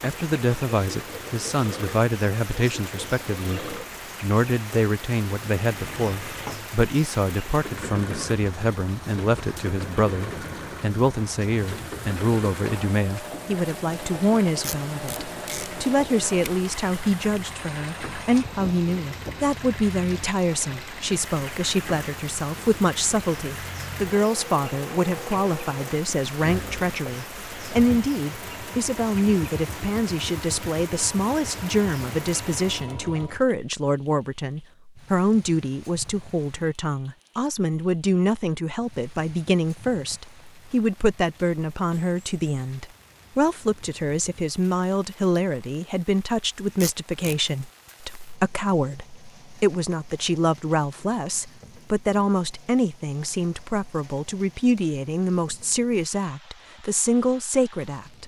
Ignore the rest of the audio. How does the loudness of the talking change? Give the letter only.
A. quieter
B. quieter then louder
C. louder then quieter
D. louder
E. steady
E.